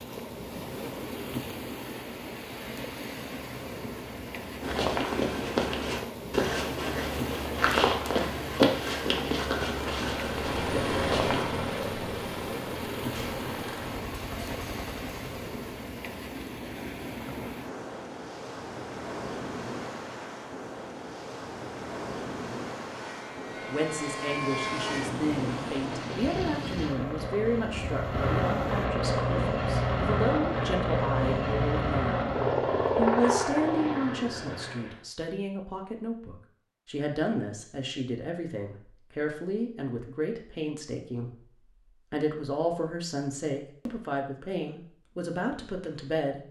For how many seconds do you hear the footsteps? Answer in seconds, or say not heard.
7 s.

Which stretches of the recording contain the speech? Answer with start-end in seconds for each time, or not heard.
23.6-32.1, 33.0-41.3, 42.1-46.4.